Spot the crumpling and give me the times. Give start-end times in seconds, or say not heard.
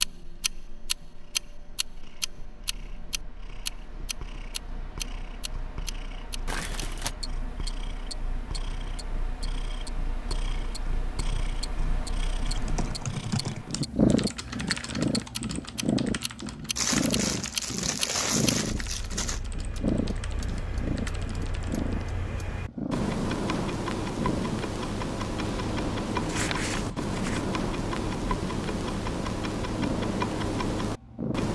6.5-7.1, 16.8-19.4, 26.1-27.4.